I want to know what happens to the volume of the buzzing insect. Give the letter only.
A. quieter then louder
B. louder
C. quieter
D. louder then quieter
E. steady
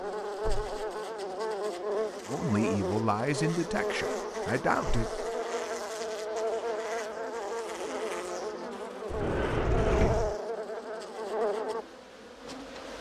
E.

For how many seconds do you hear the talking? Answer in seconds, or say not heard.
3 s.